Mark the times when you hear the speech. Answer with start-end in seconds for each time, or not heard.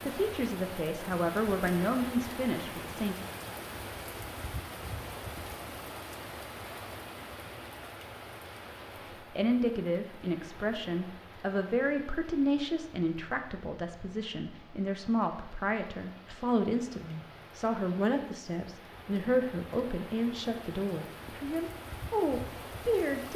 0.1-3.1, 9.3-23.3.